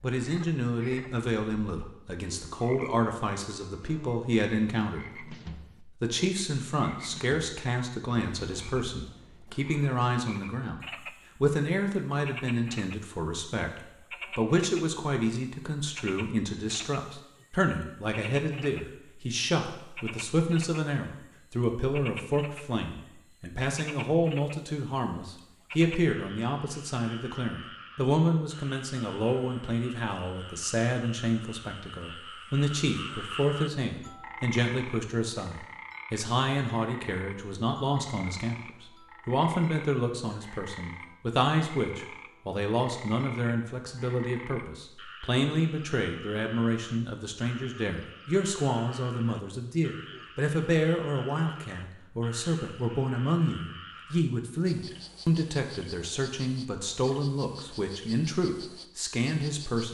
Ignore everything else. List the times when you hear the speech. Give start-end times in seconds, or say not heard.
0.0-5.4, 6.0-10.8, 11.4-59.8.